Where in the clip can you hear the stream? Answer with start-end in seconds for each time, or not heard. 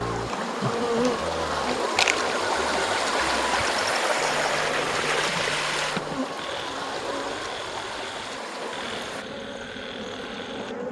0.0-9.2.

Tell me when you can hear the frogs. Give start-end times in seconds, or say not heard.
0.0-10.8.